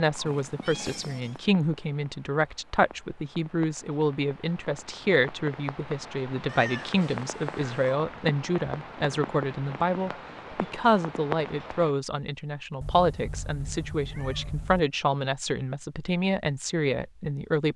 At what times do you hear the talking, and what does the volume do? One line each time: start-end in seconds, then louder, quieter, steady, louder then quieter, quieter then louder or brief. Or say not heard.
0.0-17.7 steady.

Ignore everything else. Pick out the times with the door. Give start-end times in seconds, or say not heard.
not heard.